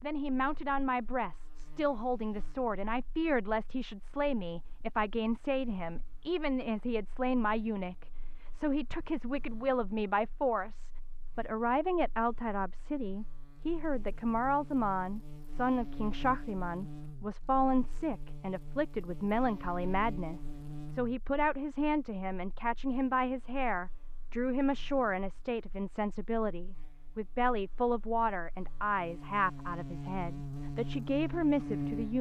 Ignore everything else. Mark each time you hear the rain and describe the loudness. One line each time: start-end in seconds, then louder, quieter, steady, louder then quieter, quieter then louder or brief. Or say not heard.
not heard.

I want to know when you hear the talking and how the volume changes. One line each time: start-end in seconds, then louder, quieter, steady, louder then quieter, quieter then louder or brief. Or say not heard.
0.0-32.1 steady.